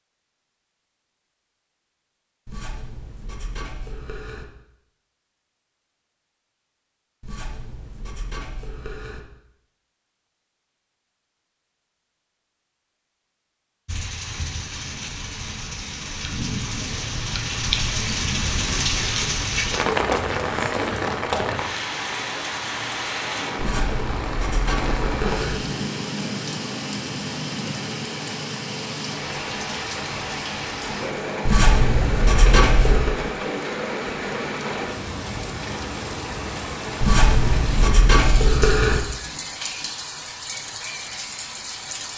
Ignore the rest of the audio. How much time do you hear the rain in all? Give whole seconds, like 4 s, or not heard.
28 s.